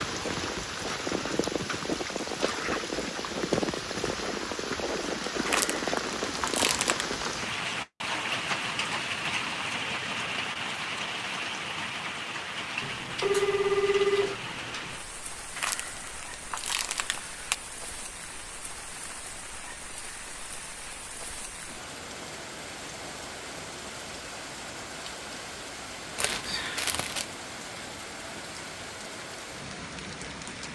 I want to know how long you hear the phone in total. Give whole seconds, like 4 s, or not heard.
2 s.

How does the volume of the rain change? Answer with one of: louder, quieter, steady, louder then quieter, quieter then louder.
quieter.